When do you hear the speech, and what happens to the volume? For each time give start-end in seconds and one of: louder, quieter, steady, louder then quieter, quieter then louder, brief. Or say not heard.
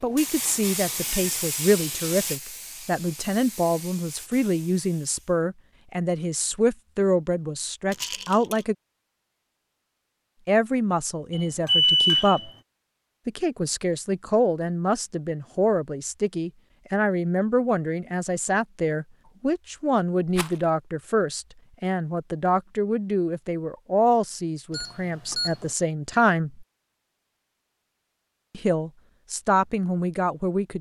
0.0-8.8 steady
10.4-12.5 brief
13.2-26.6 steady
28.5-30.7 brief.